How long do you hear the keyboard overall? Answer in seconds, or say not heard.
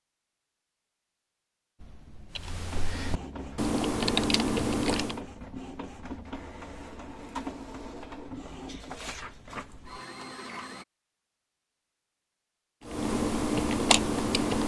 5 s.